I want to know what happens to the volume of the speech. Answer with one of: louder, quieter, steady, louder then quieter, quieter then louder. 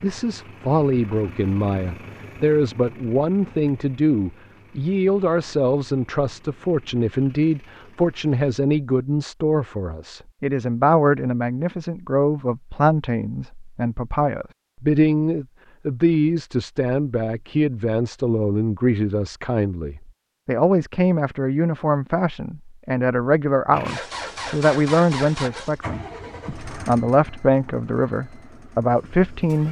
steady.